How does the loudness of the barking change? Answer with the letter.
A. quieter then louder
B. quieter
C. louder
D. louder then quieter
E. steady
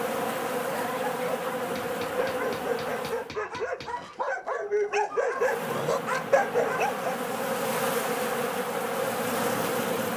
C.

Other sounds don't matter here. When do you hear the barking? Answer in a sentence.
The barking can be heard from 0.7 to 7.2 s.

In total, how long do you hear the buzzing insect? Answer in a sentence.
The buzzing insect can be heard for 8 seconds in total.